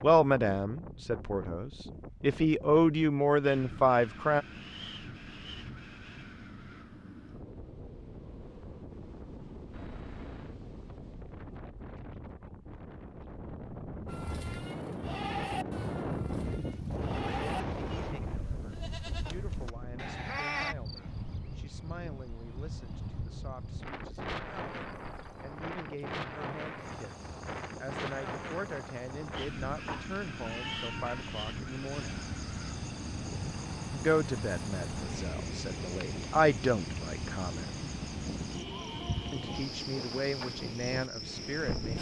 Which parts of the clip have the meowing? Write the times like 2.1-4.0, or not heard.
9.7-10.6, 29.9-31.3.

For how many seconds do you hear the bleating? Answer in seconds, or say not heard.
7 s.